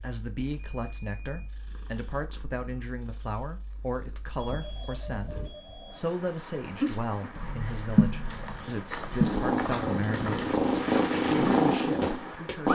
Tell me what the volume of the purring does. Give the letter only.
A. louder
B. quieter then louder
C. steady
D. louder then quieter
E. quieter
A.